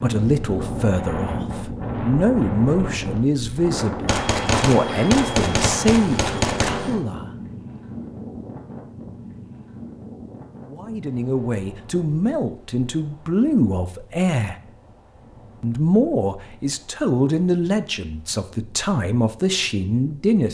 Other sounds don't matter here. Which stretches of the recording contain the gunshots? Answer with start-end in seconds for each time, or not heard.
4.0-7.0.